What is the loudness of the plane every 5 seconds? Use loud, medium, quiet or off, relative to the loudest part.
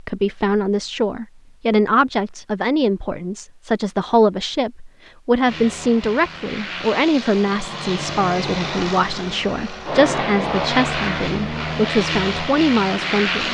off, medium, loud.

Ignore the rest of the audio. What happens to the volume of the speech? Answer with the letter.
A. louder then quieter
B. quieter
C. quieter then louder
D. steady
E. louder
D.